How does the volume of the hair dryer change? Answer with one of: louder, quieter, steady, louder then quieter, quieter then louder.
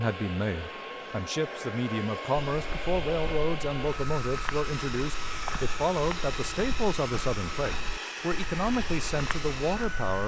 steady.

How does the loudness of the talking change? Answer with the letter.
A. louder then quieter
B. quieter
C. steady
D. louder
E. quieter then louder
C.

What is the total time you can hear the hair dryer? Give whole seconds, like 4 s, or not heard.
10 s.